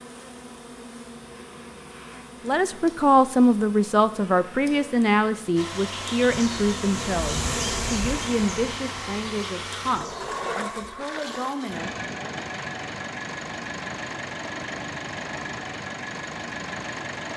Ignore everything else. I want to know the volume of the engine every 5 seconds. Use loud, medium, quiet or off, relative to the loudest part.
off, loud, loud, loud.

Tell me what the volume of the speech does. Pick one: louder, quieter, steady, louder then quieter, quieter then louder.
quieter.